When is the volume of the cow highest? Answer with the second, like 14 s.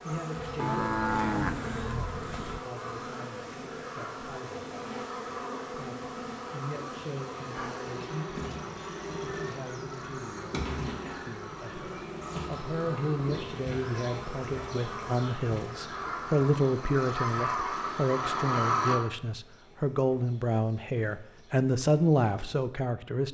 1 s.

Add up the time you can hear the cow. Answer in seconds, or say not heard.
2 s.